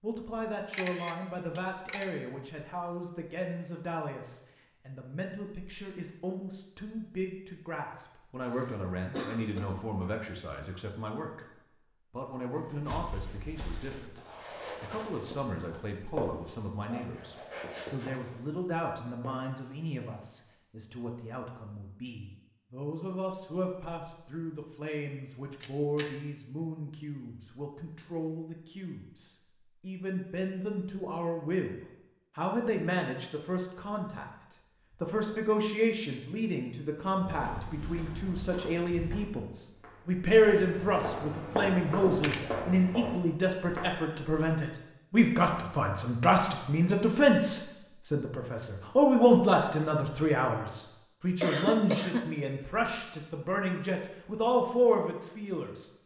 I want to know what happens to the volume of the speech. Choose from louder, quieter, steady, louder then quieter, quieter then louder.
louder.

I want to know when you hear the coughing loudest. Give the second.
52 s.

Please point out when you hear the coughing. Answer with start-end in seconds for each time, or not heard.
8.4-10.2, 51.4-52.2.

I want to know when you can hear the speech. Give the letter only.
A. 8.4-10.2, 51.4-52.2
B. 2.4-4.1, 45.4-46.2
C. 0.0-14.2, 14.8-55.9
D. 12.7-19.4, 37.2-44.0
C.